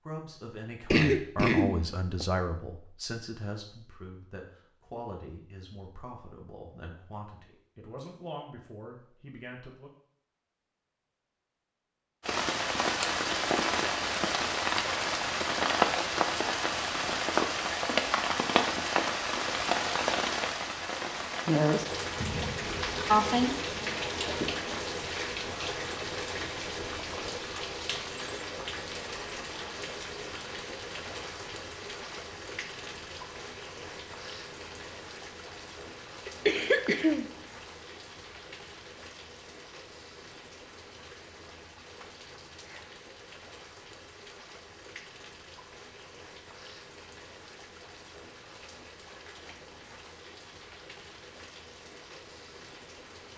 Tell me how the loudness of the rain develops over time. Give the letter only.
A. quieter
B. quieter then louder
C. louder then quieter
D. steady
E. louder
A.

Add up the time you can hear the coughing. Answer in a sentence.
The coughing can be heard for 4 seconds in total.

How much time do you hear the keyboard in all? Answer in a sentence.
The keyboard can't be heard in this clip.